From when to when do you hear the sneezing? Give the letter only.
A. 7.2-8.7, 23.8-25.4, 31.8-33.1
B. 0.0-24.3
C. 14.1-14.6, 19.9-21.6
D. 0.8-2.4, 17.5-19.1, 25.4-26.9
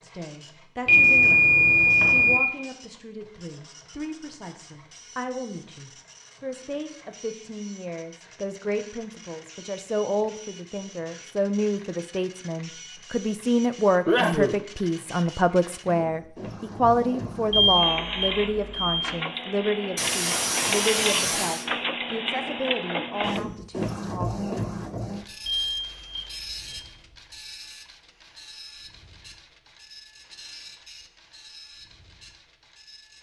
C.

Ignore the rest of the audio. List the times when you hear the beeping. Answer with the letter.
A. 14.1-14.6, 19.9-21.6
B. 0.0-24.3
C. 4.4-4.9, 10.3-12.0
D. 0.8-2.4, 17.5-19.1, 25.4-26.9
D.